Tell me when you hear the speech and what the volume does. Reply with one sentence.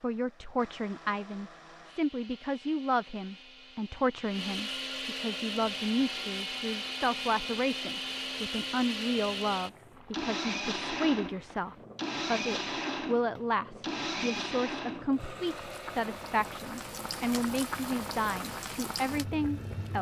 The speech can be heard from 0.0 to 19.9 s, at a steady volume.